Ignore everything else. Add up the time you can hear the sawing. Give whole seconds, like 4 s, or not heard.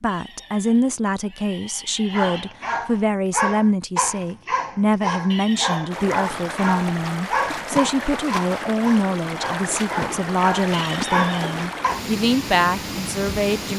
not heard.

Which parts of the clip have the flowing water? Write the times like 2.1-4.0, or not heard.
5.9-13.7.